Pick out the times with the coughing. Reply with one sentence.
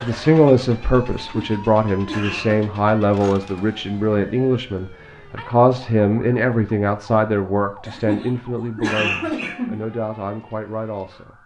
The coughing can be heard from 1.1 to 2.6 s and from 7.8 to 9.8 s.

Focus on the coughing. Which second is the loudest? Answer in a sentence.
The volume of the coughing peaks at 9 seconds.